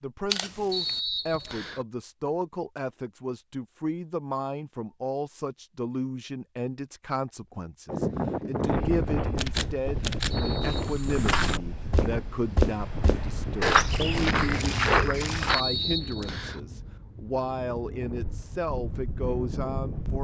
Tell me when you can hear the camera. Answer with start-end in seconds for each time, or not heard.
0.3-1.0, 9.3-10.4, 14.5-15.6.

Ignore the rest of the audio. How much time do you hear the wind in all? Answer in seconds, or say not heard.
12 s.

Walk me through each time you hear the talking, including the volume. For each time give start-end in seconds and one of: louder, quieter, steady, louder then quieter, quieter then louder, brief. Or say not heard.
0.0-20.2 steady.